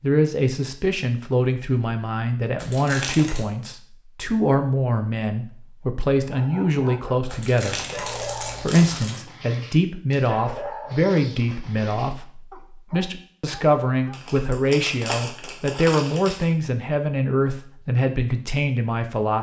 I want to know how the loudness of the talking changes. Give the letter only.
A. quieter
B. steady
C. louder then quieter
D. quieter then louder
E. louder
B.